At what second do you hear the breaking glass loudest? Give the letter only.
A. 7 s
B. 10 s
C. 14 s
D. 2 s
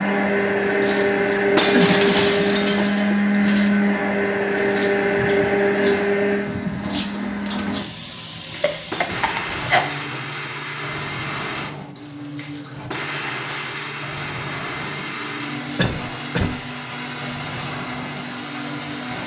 D.